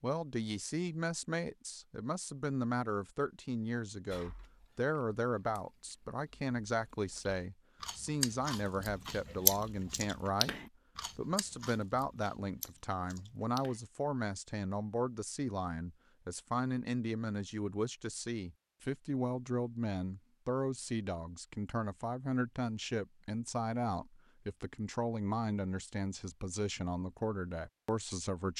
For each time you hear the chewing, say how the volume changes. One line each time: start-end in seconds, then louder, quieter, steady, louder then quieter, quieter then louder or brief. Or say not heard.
4.1-13.8 louder then quieter.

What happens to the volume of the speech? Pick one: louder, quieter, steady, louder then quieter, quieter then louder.
steady.